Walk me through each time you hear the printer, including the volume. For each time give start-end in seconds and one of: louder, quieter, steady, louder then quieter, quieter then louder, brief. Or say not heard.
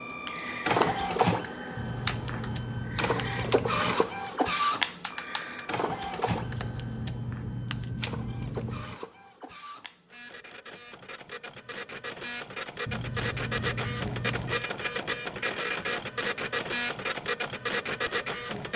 0.0-18.7 quieter then louder.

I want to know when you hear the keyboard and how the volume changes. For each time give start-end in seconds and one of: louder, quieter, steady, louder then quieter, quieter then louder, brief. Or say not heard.
0.1-6.6 quieter then louder.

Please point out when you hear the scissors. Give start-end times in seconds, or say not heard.
1.8-3.9, 6.2-9.0, 12.8-14.7.